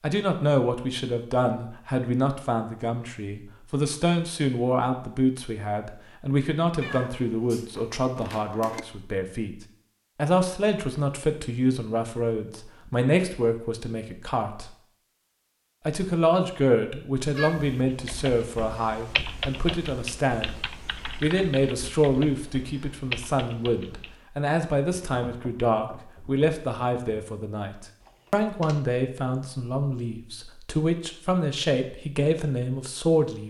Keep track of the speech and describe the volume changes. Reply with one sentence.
The volume of the speech stays about the same.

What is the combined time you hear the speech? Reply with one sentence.
The speech can be heard for 32 seconds in total.